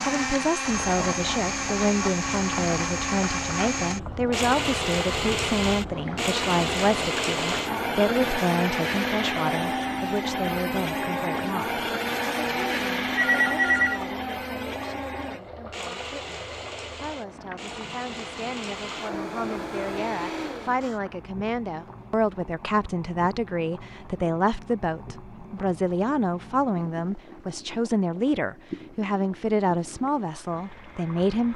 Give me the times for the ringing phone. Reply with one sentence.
The ringing phone can be heard from 12.3 to 14.0 s.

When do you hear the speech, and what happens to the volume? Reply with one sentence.
The speech can be heard from 0.0 to 31.5 s, getting quieter then louder.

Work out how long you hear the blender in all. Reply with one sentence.
You can hear the blender for 21 seconds altogether.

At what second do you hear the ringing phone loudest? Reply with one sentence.
The volume of the ringing phone peaks at 14 seconds.